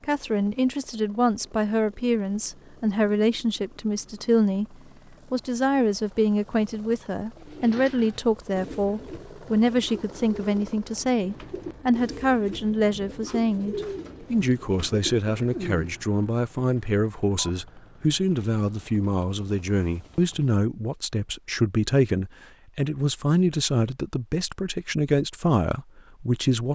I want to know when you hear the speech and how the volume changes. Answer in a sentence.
You can hear the speech from 0.0 to 26.7 s, at a steady volume.